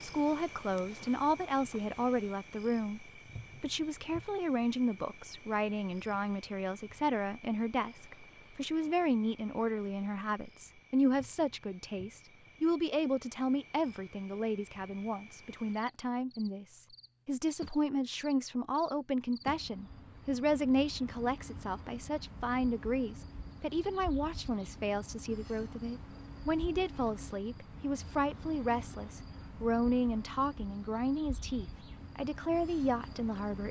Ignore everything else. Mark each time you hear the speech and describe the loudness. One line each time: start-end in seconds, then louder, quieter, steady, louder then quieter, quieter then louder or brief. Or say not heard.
0.0-33.6 steady.